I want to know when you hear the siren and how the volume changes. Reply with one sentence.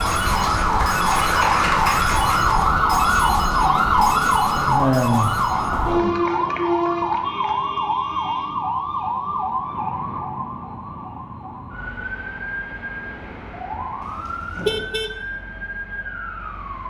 You can hear the siren from 0.0 to 16.8 s, getting quieter.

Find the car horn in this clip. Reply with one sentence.
The car horn can be heard from 14.0 to 15.2 s.